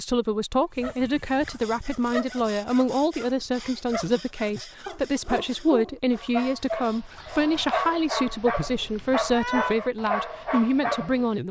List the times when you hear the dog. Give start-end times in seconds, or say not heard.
0.8-11.3.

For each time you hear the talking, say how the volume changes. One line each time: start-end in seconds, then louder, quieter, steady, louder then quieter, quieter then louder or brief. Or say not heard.
0.0-11.4 steady.